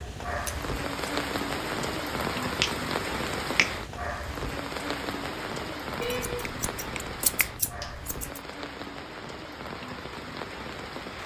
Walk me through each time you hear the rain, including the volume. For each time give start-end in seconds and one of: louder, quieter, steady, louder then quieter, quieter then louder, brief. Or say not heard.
0.0-11.2 quieter.